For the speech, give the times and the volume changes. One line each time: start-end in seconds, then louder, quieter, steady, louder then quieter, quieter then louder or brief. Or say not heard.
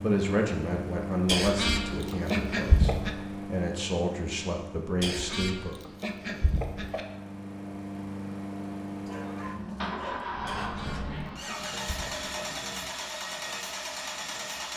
0.0-5.8 quieter then louder.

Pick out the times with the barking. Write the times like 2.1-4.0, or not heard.
9.1-11.4.